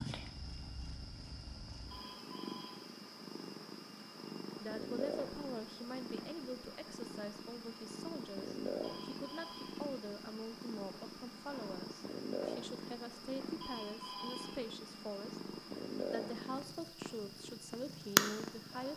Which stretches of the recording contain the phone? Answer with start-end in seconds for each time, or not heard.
1.9-2.8, 8.8-9.8, 13.6-14.7.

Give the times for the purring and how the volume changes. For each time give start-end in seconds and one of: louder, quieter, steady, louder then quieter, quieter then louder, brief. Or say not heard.
0.0-18.9 louder.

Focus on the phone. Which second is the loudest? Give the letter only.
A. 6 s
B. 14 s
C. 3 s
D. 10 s
B.